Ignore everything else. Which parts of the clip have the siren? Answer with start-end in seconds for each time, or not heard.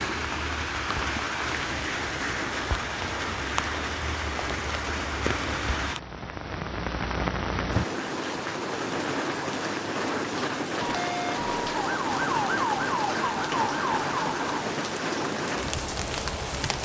10.8-14.7.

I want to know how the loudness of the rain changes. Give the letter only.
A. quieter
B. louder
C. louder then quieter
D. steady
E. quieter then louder
D.